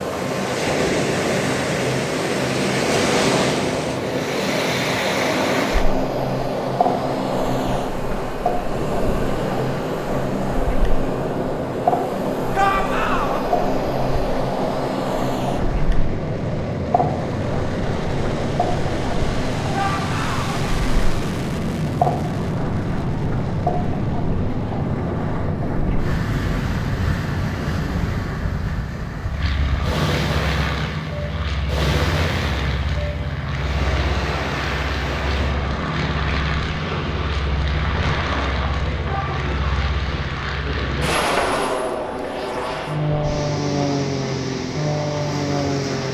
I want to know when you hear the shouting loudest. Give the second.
13 s.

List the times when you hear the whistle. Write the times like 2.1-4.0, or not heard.
not heard.